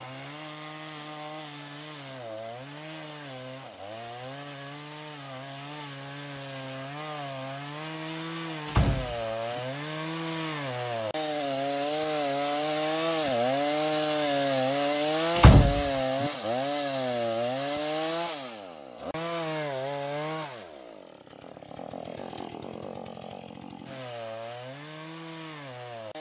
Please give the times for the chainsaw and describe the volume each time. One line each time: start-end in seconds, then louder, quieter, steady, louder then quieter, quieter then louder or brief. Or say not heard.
0.0-26.1 louder then quieter.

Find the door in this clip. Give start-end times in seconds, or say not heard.
8.7-9.6, 15.3-16.3.